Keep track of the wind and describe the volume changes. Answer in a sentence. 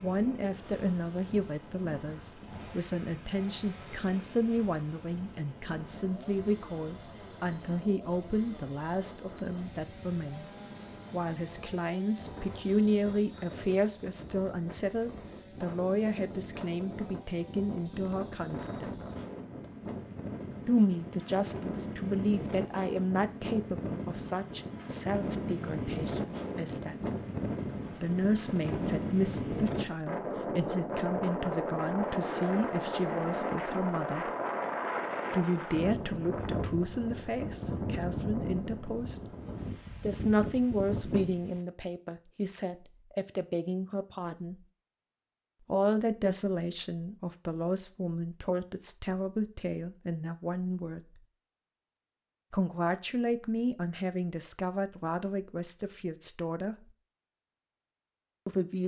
The volume of the wind goes up.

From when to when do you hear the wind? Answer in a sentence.
You can hear the wind from 0.0 to 41.6 s.